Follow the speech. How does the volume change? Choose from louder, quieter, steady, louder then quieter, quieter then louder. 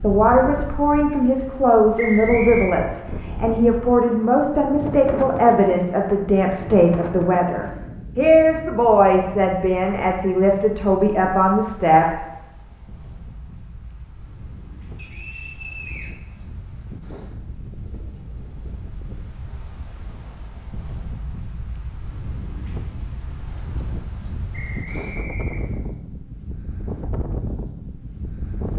steady.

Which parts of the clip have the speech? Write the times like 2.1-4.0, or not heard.
0.0-12.2.